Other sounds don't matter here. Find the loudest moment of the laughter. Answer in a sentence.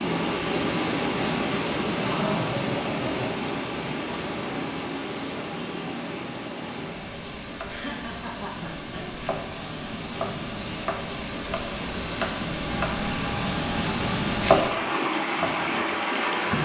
The loudest moment of the laughter is at 2 seconds.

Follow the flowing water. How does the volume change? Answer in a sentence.
The volume of the flowing water goes down, then up.